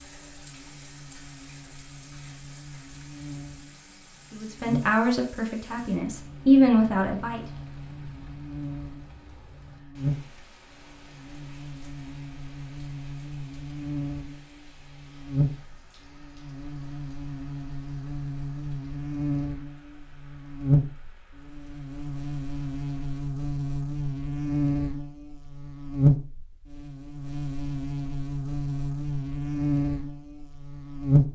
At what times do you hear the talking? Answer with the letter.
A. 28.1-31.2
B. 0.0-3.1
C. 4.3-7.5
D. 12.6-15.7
C.